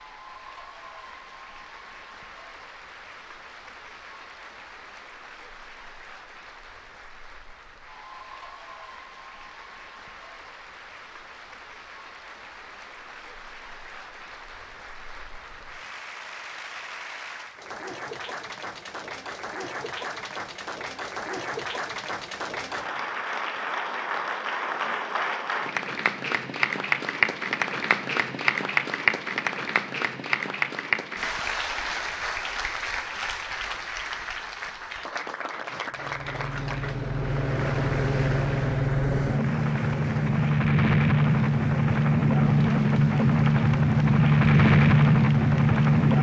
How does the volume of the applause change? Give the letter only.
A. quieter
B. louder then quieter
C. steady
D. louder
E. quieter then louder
B.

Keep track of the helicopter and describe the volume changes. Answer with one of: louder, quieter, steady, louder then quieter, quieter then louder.
louder.